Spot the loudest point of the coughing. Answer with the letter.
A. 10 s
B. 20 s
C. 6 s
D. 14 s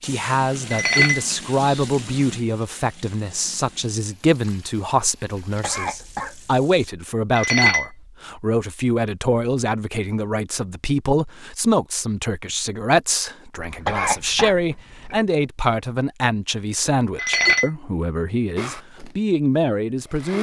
D.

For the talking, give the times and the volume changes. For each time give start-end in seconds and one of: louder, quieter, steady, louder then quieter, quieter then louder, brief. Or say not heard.
0.0-20.3 steady.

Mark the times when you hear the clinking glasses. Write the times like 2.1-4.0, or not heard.
0.7-1.9, 7.3-7.8, 17.1-17.7.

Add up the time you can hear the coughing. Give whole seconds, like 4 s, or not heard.
3 s.